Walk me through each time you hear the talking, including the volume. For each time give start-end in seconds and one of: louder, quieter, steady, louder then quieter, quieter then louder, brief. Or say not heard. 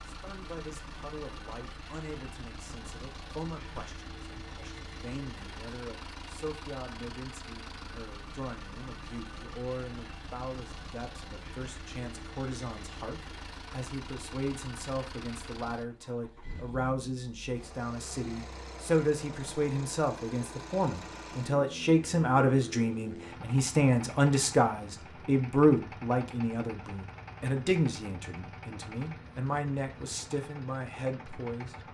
0.1-31.8 louder.